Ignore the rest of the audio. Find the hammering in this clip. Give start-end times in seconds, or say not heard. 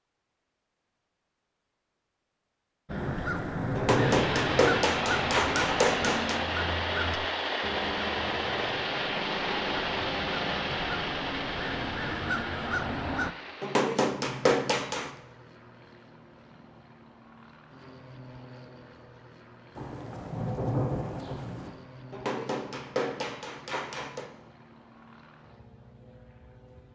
3.8-6.4, 13.6-15.1, 22.1-24.2.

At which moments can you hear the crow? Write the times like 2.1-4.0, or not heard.
2.9-13.3.